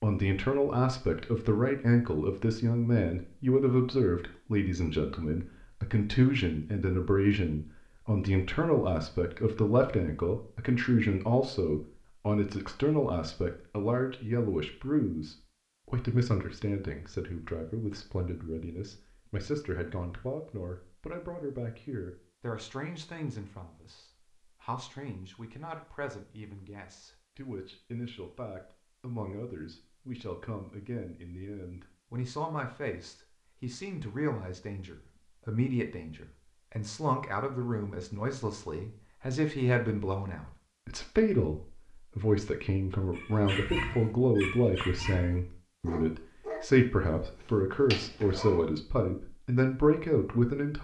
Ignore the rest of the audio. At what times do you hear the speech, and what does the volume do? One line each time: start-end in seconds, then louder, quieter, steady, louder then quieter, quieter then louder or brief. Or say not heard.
0.0-50.7 quieter then louder.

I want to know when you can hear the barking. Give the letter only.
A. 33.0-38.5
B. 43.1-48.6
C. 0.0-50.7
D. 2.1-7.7
B.